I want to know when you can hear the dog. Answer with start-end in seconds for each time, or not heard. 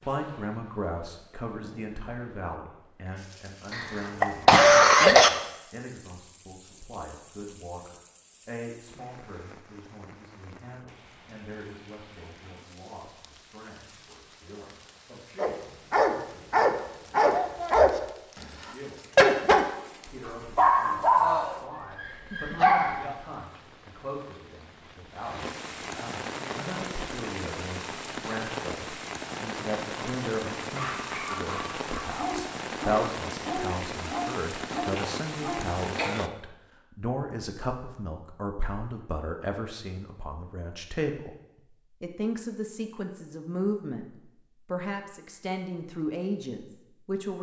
15.3-23.1, 30.8-35.6.